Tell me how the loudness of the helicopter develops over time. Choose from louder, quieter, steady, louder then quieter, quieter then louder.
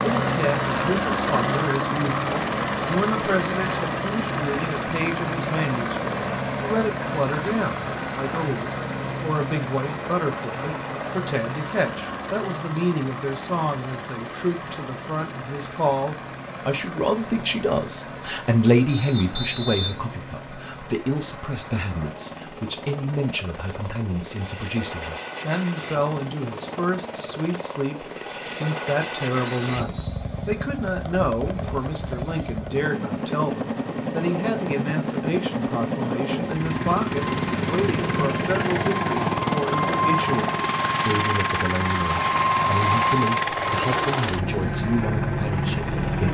quieter then louder.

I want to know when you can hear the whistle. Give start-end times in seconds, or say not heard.
18.9-19.9, 29.5-30.3.